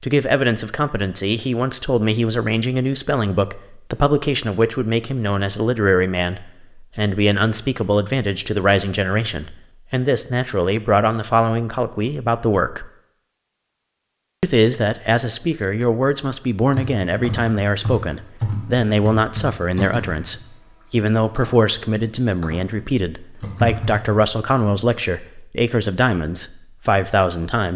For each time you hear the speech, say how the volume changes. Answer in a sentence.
The speech can be heard from 0.0 to 12.9 s, at a steady volume; and from 14.4 to 27.7 s, at a steady volume.